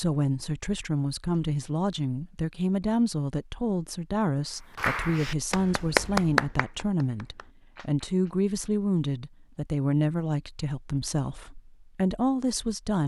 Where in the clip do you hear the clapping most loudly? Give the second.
6 s.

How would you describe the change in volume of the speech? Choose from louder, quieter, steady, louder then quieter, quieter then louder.
steady.